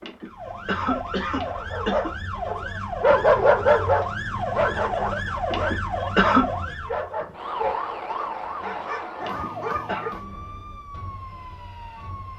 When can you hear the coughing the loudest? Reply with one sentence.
The volume of the coughing peaks at 6 seconds.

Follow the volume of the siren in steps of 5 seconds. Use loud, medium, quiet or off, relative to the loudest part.
loud, loud, medium.